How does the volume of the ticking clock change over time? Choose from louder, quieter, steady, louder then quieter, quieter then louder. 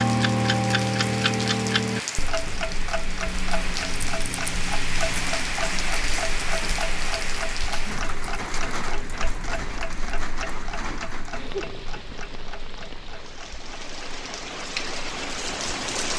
quieter.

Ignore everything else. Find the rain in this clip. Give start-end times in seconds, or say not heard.
0.0-16.1.